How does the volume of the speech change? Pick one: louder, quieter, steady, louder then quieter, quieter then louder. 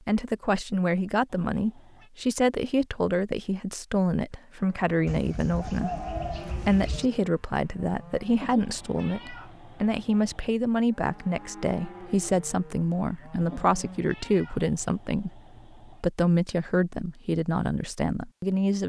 steady.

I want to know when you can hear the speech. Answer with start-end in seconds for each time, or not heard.
0.1-18.8.